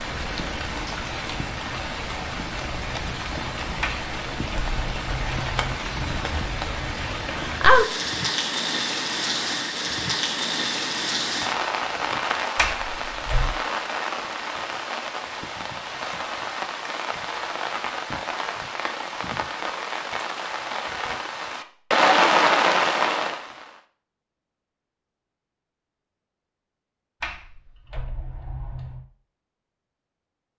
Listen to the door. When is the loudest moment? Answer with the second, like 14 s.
13 s.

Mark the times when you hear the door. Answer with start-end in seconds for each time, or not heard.
3.8-5.8, 12.6-13.6, 27.2-29.1.